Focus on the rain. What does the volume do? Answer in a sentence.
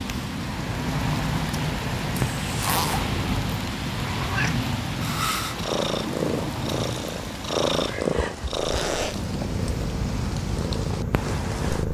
The loudness of the rain goes down.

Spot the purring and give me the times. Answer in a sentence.
The purring can be heard from 0.0 to 11.8 s.